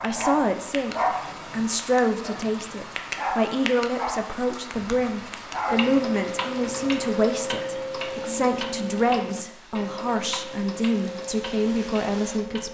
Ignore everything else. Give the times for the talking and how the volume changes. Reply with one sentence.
The talking can be heard from 0.0 to 12.6 s, at a steady volume.